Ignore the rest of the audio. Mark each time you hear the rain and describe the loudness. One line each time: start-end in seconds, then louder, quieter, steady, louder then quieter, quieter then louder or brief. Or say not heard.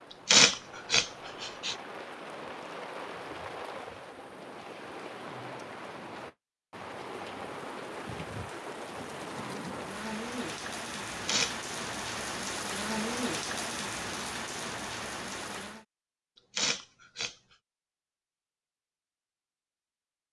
0.0-15.8 louder.